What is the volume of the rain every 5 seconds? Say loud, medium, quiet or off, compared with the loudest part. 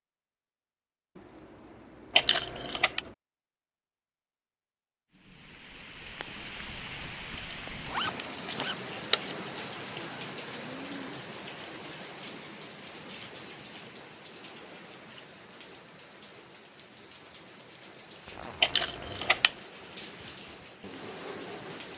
off, loud, loud, medium, loud.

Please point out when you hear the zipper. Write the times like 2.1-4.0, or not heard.
1.1-3.1, 7.8-8.8, 18.2-19.4.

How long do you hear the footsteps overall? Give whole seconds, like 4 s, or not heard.
not heard.